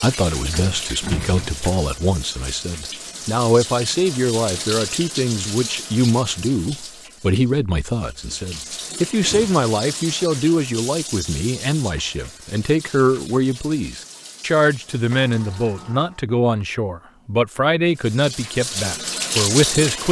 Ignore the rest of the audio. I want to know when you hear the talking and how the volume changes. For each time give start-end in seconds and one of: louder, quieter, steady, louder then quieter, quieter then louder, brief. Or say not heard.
0.0-20.0 steady.